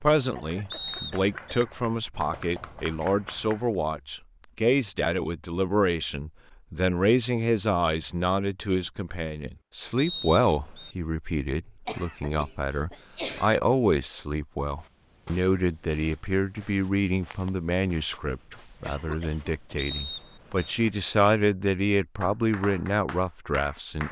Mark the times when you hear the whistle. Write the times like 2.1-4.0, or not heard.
0.7-1.6, 9.9-10.9, 19.8-20.8.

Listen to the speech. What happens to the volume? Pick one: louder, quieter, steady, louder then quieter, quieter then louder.
steady.